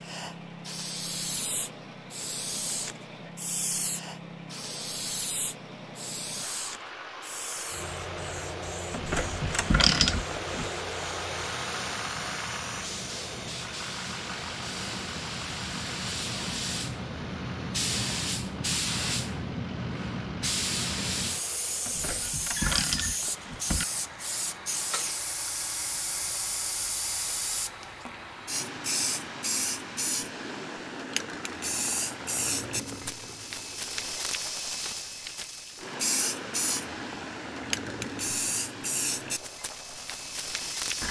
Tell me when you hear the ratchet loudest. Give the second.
10 s.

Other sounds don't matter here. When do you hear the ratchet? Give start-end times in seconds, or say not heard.
8.9-10.7, 21.9-23.9.